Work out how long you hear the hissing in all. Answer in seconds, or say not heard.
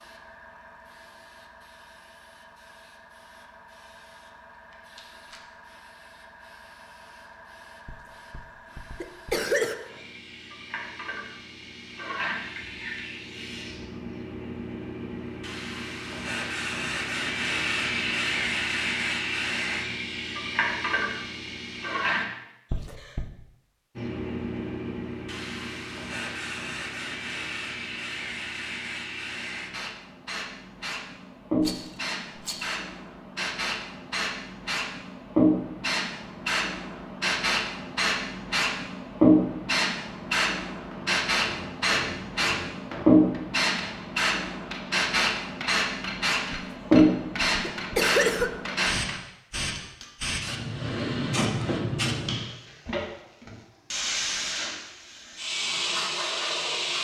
55 s.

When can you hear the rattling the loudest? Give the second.
32 s.